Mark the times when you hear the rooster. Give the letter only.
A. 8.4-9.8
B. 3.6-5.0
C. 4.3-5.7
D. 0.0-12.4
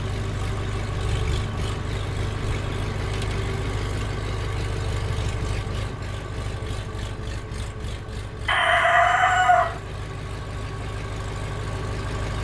A.